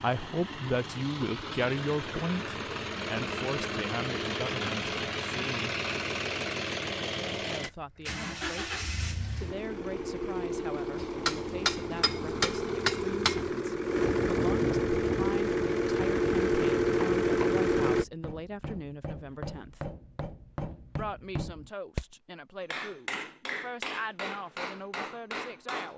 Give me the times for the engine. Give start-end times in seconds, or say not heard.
0.0-18.1.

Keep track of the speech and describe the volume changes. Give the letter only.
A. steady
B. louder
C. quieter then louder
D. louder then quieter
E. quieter
E.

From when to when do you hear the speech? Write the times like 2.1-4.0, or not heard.
0.0-5.8, 7.4-19.9, 20.9-25.9.